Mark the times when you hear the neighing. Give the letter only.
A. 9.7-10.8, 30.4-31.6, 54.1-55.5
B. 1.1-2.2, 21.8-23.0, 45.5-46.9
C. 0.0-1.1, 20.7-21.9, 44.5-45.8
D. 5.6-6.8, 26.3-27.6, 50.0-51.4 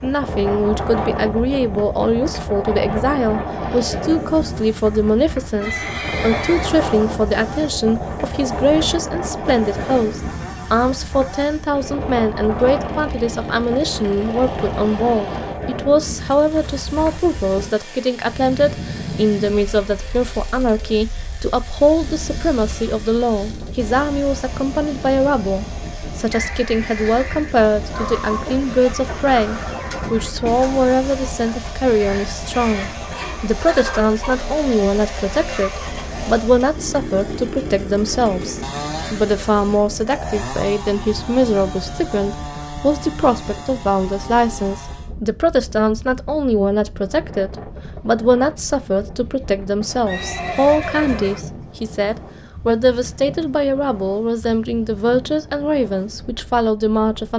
D.